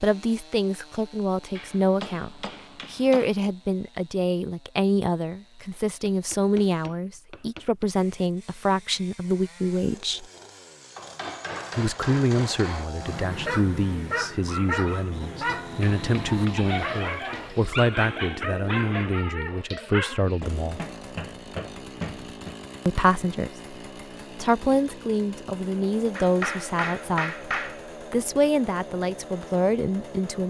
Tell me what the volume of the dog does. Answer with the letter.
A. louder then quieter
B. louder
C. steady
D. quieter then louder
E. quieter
C.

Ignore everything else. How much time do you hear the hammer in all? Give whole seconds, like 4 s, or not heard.
12 s.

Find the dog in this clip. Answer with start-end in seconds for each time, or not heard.
13.0-20.4.